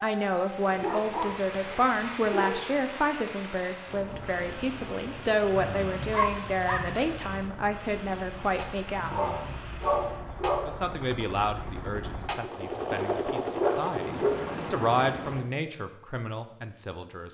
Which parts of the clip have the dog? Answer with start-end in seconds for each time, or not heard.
0.7-2.6, 6.1-6.8, 9.1-10.8, 13.1-14.4.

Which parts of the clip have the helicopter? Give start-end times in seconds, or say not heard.
3.9-15.4.